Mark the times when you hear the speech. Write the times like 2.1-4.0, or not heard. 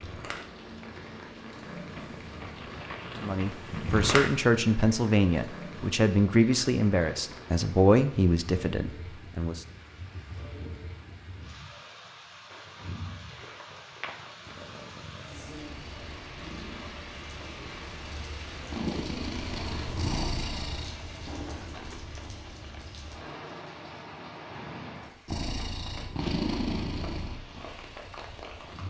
3.2-9.6.